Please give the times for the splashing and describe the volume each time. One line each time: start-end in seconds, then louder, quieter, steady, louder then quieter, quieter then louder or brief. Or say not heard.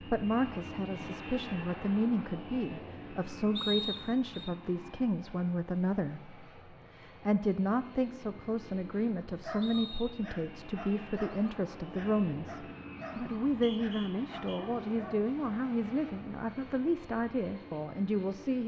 not heard.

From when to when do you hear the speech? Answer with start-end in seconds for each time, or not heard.
0.0-18.6.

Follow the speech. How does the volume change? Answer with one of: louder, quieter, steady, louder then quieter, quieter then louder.
steady.